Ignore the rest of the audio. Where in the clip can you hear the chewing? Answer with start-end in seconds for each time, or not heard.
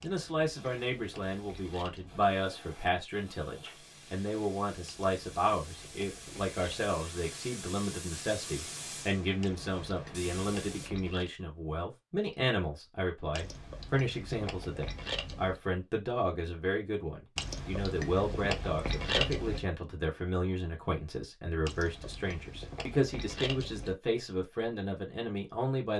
0.0-2.3, 4.8-7.0, 9.4-11.3, 13.3-15.6, 17.4-19.6, 21.6-23.9.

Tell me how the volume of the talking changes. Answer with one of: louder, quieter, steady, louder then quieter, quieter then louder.
steady.